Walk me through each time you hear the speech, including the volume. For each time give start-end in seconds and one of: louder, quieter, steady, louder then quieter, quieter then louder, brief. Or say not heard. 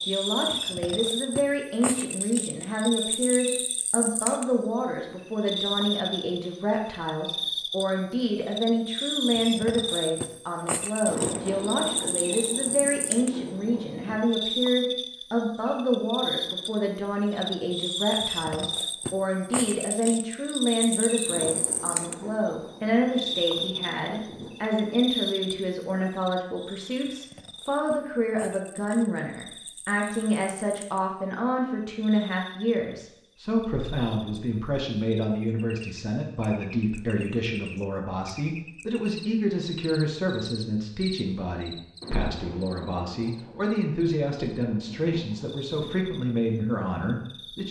0.0-47.6 steady.